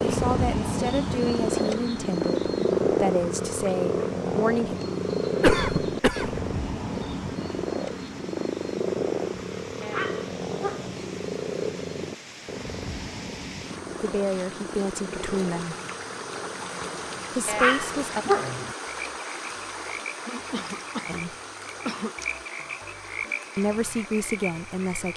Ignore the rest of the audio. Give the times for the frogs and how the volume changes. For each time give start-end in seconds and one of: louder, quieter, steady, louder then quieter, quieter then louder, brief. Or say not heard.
0.0-25.1 quieter.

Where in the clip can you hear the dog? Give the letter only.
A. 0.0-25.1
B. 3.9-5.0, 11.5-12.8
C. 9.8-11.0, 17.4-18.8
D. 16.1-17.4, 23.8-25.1
C.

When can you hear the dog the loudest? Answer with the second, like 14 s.
18 s.